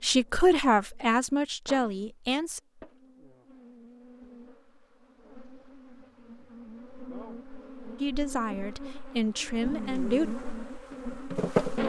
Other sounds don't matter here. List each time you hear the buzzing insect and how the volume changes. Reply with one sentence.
You can hear the buzzing insect from 0.0 to 11.8 s, getting louder.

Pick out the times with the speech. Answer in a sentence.
The speech can be heard from 0.0 to 2.6 s and from 8.0 to 10.3 s.